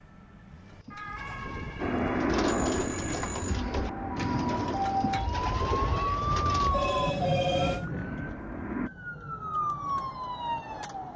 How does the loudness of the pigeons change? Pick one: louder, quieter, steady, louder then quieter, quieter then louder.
louder.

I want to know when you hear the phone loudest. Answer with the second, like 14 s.
7 s.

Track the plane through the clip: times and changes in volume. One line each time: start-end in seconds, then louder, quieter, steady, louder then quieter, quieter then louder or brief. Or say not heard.
1.8-8.9 quieter.